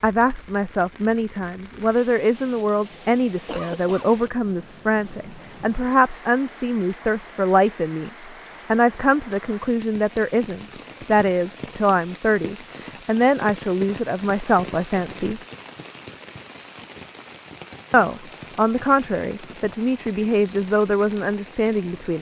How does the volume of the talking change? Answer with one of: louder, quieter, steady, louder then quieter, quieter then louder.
steady.